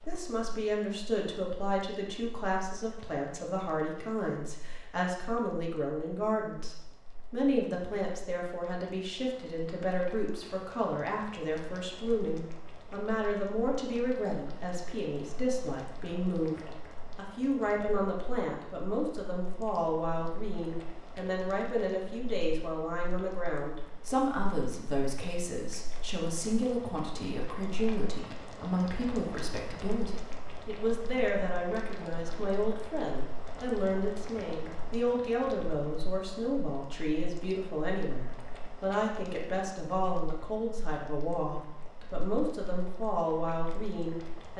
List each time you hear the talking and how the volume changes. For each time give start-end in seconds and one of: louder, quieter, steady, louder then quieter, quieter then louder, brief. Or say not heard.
0.1-44.5 steady.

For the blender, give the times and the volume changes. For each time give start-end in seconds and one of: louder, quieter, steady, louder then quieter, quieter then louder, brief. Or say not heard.
not heard.